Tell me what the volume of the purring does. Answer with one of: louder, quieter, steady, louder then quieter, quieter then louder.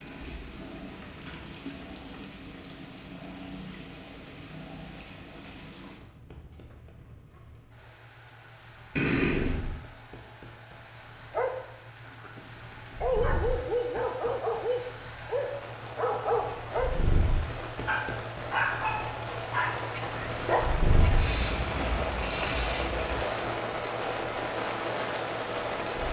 quieter then louder.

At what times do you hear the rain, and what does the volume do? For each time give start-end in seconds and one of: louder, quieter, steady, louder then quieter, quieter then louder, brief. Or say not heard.
0.0-26.0 louder.